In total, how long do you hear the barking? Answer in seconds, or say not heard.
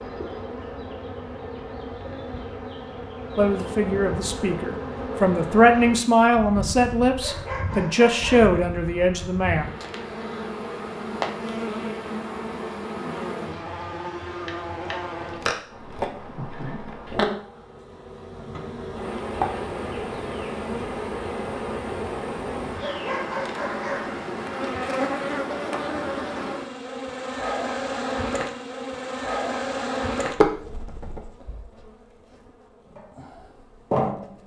3 s.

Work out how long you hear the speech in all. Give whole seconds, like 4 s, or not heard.
6 s.